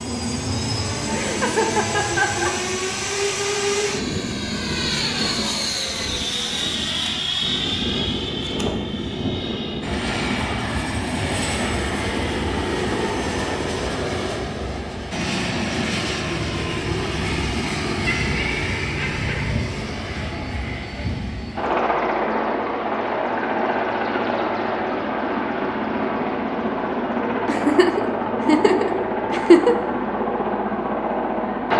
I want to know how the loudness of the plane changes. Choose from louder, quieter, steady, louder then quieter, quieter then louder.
steady.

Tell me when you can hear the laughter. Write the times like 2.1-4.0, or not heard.
1.1-2.5, 18.1-19.5, 27.4-29.8.